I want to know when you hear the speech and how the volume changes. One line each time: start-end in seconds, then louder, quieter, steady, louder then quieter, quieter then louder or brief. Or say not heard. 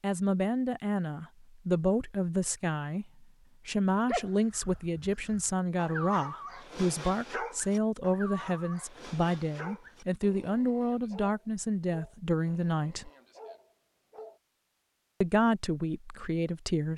0.0-13.1 steady
15.2-16.9 brief.